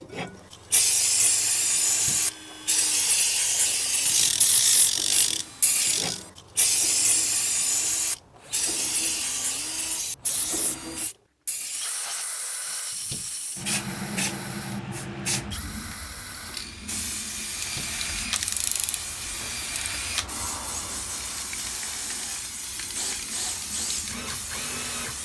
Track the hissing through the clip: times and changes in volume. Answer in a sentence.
The hissing can be heard from 0.0 to 25.2 s, getting quieter.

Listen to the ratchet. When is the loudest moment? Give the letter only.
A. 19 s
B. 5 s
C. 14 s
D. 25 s
B.